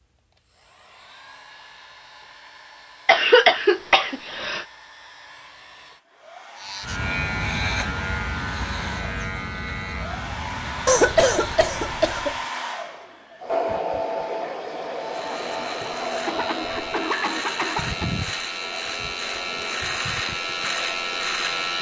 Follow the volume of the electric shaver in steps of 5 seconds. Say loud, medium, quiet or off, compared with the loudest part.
off, loud, medium, medium, loud.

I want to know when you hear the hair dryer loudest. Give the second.
14 s.